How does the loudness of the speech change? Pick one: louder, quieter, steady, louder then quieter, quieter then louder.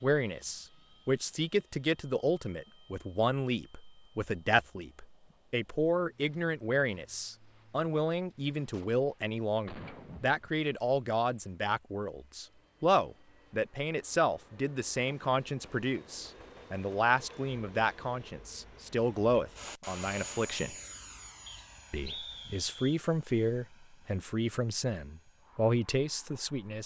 steady.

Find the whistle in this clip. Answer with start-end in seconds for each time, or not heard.
21.4-22.9.